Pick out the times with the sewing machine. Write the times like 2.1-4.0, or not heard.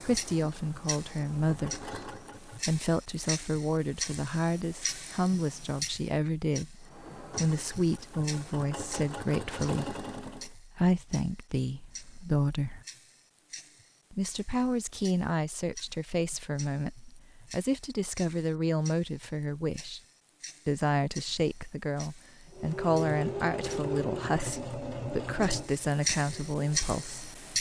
0.0-2.9, 6.8-10.5, 22.5-27.3.